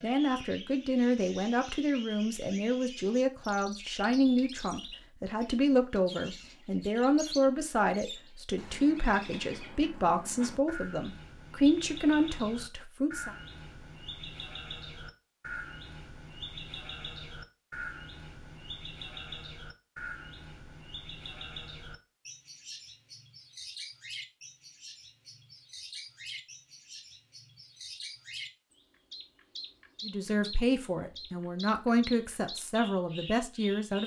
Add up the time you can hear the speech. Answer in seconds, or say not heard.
17 s.